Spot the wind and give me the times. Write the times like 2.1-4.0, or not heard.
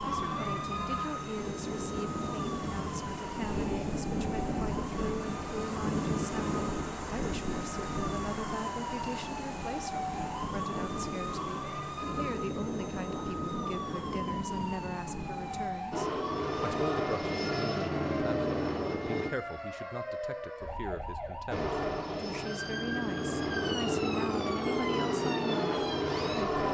0.0-15.8.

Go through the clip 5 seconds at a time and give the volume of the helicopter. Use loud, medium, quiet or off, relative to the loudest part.
off, off, off, loud, loud, loud.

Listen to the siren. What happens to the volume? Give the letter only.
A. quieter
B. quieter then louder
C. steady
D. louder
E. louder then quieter
C.